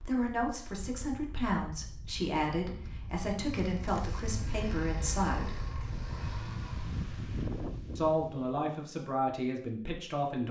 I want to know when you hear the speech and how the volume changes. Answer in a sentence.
The speech can be heard from 0.0 to 5.5 s, at a steady volume; and briefly from 8.0 to 10.4 s.